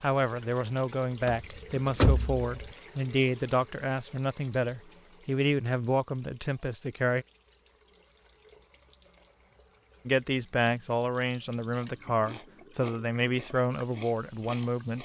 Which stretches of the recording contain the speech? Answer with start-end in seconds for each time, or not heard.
0.0-7.2, 10.1-15.0.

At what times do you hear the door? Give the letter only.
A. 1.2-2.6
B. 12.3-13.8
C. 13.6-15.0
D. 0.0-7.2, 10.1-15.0
A.